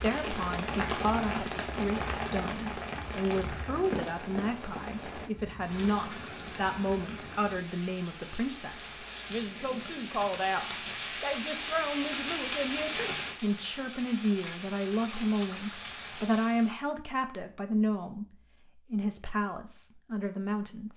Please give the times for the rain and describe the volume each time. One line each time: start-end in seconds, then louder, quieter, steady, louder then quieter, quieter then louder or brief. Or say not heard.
0.0-16.8 quieter then louder.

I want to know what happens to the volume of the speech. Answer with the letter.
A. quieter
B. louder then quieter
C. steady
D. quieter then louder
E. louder
C.